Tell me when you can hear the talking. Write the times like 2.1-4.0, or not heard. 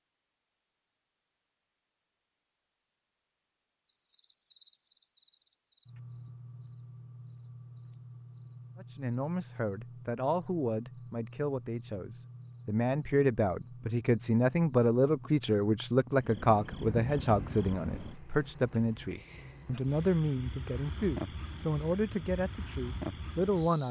8.8-23.8.